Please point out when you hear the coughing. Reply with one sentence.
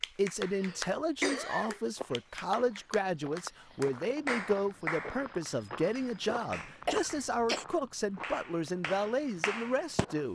You can hear the coughing from 0.5 to 1.8 s and from 6.8 to 7.7 s.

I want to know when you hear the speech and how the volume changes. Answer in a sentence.
The speech can be heard from 0.1 to 10.3 s, at a steady volume.